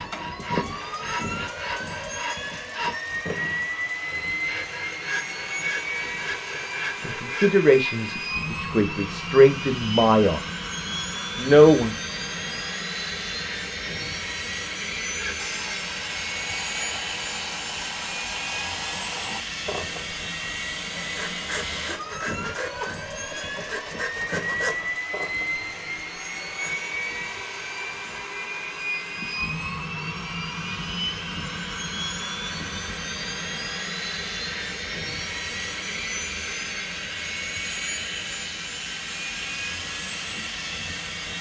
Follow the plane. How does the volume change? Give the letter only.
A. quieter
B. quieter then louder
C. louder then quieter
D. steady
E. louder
D.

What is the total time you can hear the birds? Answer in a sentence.
The birds can't be heard in this clip.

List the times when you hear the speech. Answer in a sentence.
You can hear the speech from 7.0 to 10.4 s and from 11.3 to 11.9 s.